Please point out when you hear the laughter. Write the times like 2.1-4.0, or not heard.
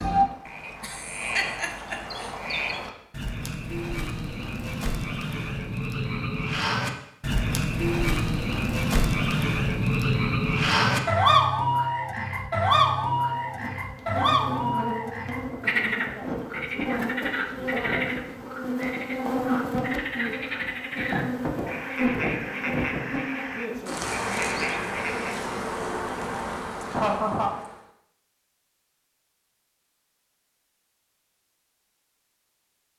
0.8-2.3, 26.9-27.5.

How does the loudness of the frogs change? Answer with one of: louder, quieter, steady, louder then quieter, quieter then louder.
louder then quieter.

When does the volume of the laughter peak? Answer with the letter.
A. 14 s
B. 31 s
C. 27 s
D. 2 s
C.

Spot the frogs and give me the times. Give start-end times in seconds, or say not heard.
0.0-25.5.